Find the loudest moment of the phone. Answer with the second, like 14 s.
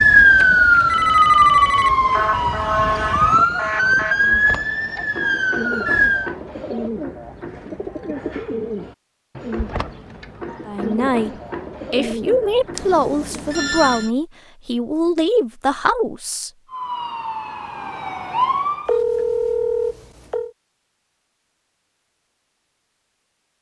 19 s.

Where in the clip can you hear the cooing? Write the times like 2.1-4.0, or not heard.
4.2-13.6.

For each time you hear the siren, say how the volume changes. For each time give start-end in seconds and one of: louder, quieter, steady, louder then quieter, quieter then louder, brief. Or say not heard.
0.0-6.3 quieter
16.7-18.9 brief.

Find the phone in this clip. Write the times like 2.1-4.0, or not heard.
0.3-2.0, 12.8-14.1, 18.9-20.5.